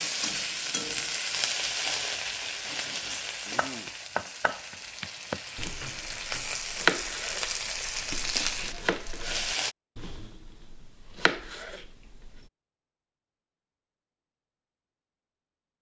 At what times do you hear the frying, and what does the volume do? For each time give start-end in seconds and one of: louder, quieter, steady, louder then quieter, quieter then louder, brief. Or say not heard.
0.0-9.8 quieter then louder.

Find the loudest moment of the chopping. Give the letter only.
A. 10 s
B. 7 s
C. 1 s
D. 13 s
B.